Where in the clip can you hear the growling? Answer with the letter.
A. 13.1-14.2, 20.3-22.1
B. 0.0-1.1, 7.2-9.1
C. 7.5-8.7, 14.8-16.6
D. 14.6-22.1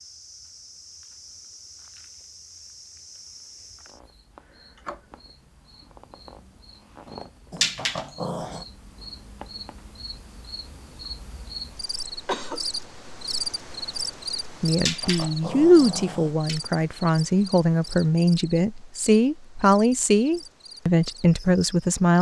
C.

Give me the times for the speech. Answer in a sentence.
You can hear the speech from 14.6 to 22.1 s.